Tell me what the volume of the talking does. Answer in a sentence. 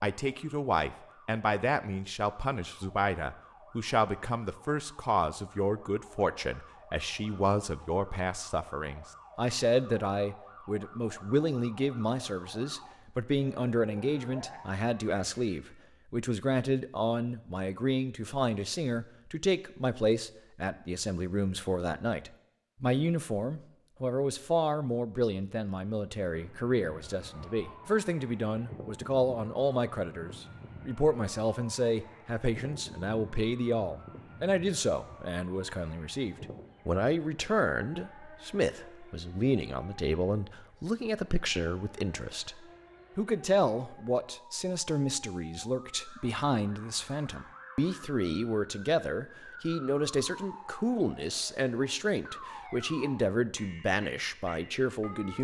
The loudness of the talking stays about the same.